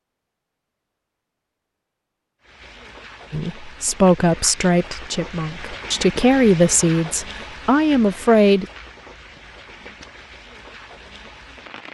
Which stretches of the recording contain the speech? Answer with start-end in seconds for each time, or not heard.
3.3-8.7.